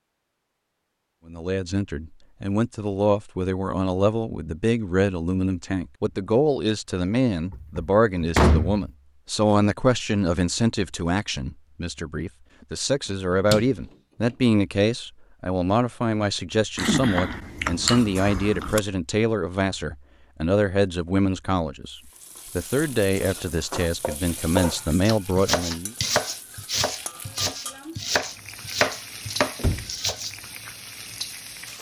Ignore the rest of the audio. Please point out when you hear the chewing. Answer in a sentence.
The chewing can be heard from 16.8 to 18.8 s.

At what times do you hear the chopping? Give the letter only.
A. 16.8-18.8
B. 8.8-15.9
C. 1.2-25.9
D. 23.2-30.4
D.